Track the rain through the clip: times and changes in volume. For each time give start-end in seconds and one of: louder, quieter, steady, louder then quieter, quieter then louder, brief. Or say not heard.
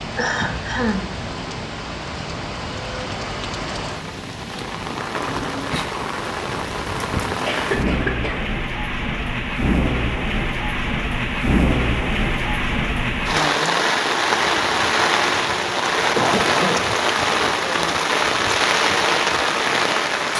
0.0-20.3 louder.